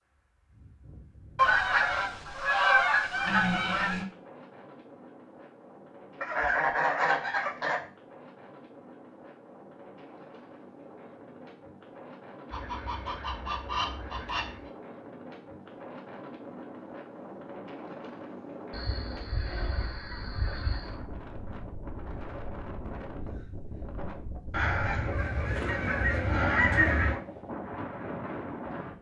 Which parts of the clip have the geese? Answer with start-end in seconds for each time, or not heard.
1.4-4.0, 6.2-7.8, 12.5-14.7, 18.7-20.9, 24.5-27.2.